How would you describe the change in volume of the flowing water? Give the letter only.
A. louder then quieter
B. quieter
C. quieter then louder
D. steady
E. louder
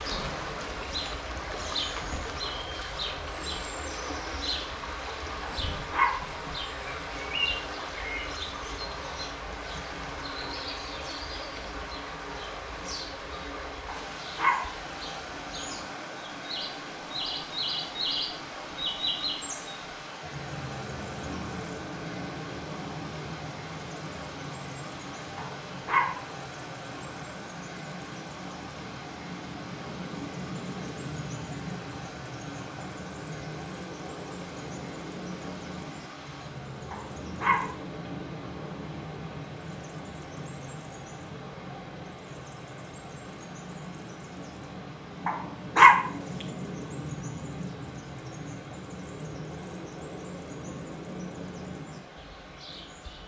B.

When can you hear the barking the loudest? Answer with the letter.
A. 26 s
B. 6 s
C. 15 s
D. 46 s
D.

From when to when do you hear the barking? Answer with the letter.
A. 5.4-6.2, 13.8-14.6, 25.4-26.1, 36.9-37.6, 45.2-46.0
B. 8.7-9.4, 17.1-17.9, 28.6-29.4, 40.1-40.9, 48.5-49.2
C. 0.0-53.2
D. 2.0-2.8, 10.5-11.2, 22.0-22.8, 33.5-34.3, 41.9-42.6
A.